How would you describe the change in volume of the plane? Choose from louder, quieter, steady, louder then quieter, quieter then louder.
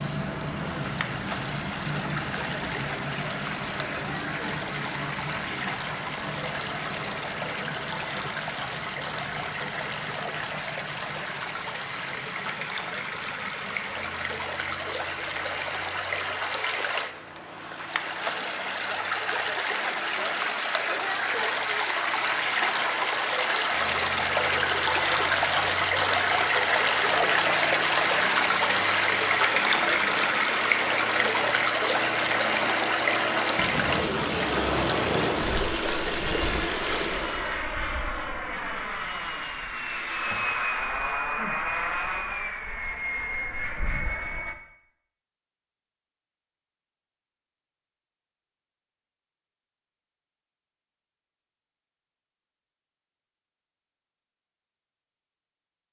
quieter then louder.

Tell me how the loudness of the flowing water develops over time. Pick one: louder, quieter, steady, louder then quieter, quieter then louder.
louder.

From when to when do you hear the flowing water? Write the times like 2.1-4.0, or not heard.
0.0-37.6.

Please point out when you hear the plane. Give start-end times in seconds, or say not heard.
0.0-44.5.